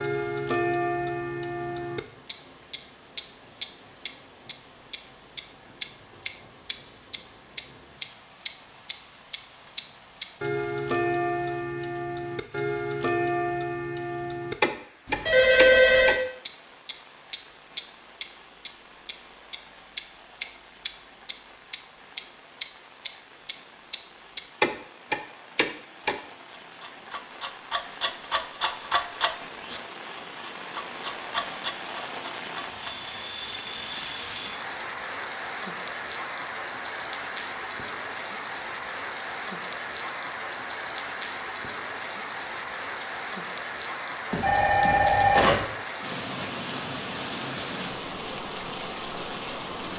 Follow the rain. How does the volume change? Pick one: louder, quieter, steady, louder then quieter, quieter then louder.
louder.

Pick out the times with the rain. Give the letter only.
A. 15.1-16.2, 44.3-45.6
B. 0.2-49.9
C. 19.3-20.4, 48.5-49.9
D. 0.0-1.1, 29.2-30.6
B.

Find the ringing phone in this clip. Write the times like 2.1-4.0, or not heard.
15.1-16.2, 44.3-45.6.